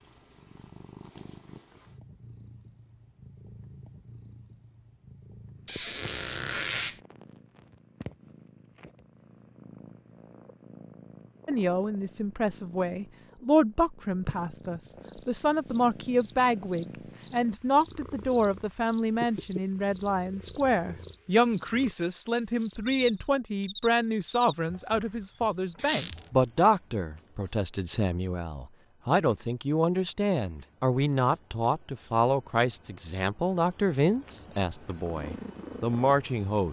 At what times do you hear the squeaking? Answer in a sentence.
The squeaking can be heard from 5.7 to 7.0 s and from 25.8 to 26.2 s.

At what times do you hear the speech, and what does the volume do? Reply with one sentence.
The speech can be heard from 11.4 to 36.6 s, at a steady volume.